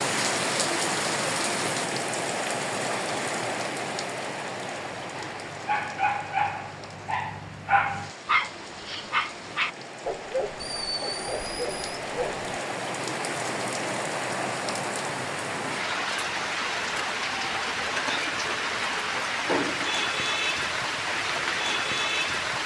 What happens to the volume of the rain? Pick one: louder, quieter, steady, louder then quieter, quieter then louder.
quieter then louder.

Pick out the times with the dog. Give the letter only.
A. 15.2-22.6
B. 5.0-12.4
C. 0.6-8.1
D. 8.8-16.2
B.